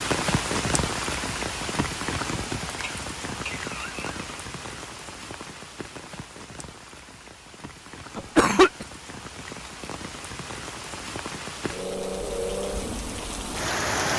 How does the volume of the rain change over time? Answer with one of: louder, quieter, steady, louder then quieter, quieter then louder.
quieter then louder.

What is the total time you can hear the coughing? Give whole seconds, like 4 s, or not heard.
2 s.